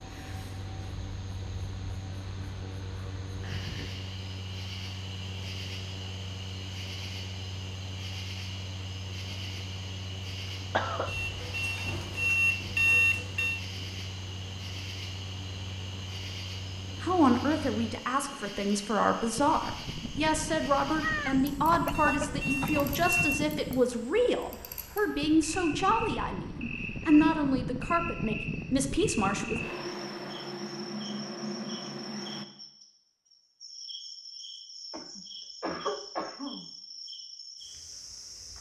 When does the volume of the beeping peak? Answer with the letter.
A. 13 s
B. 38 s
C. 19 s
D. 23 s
A.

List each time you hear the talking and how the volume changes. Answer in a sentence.
You can hear the talking from 17.0 to 29.6 s, at a steady volume.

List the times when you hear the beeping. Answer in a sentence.
The beeping can be heard from 11.1 to 13.6 s and from 21.9 to 23.4 s.